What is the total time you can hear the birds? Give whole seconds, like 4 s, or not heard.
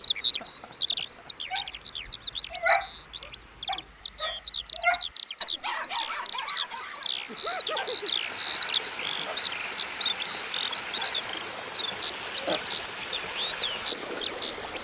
15 s.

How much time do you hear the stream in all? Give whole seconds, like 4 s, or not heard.
15 s.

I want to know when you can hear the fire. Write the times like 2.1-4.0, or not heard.
not heard.